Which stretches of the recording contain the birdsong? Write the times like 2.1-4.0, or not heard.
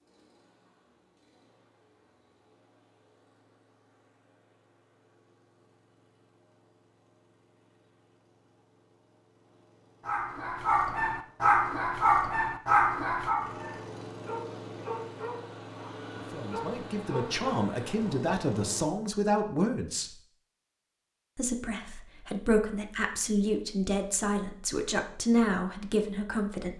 not heard.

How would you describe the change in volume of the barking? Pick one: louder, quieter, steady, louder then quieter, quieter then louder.
quieter.